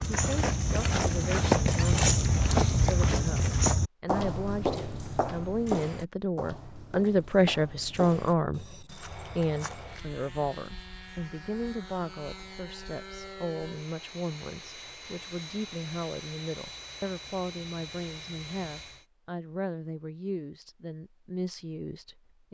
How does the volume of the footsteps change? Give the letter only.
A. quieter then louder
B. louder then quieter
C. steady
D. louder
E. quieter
E.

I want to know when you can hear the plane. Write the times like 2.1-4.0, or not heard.
8.9-19.1.